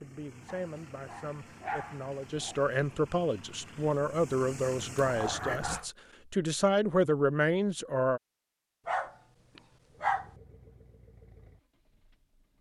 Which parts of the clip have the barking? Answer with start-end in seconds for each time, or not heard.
0.5-2.6, 5.0-5.9, 8.8-10.3.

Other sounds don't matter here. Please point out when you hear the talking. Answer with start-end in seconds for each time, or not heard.
0.0-8.2.